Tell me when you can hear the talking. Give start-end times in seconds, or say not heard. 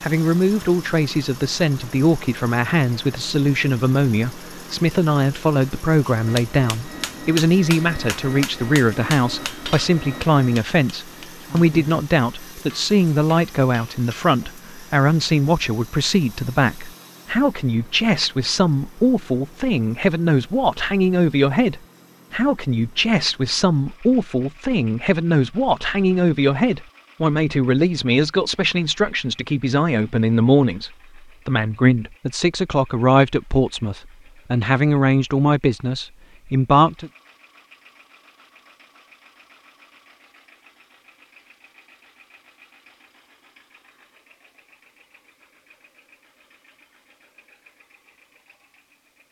0.0-37.1.